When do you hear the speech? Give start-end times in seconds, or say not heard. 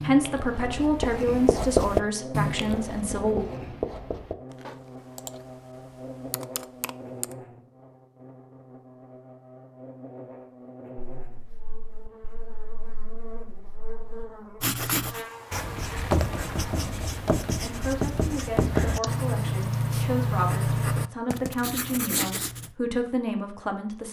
0.0-3.4, 16.6-24.0.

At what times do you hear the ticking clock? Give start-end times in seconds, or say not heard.
not heard.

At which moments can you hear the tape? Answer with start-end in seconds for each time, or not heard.
not heard.